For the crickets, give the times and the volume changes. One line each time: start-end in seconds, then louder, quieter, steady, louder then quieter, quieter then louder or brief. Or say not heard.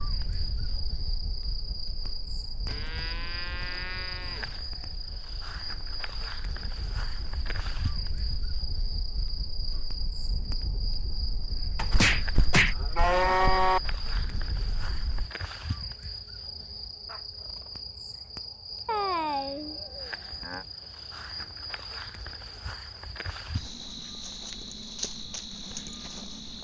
0.0-26.5 steady.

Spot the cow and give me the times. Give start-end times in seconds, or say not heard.
2.6-4.6, 11.8-13.8, 18.9-20.6.